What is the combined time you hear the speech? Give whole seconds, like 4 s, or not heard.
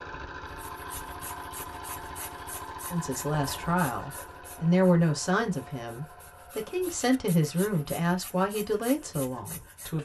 7 s.